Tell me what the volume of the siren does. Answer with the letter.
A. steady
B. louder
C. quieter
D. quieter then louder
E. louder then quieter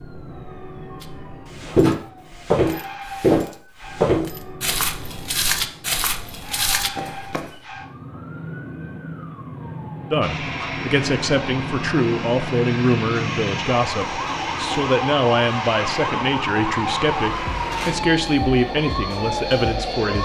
B.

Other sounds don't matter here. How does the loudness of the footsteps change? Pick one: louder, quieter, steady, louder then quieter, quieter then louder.
quieter.